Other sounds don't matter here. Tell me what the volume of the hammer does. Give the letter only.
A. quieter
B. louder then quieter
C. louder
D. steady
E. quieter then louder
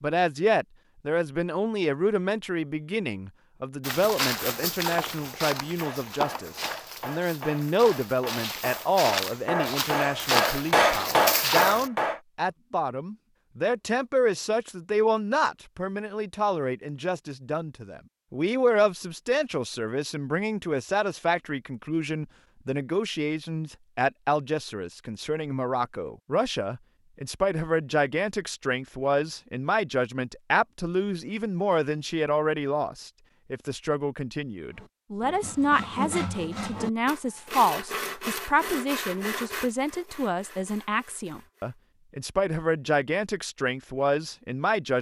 C.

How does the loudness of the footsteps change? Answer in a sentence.
The loudness of the footsteps goes down, then up.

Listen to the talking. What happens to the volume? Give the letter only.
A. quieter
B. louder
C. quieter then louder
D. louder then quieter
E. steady
E.